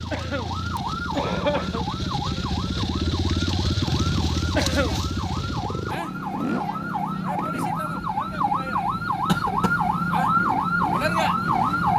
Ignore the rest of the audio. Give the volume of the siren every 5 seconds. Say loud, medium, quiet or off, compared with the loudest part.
quiet, medium, loud.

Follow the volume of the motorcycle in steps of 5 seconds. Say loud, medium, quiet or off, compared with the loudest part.
loud, medium, medium.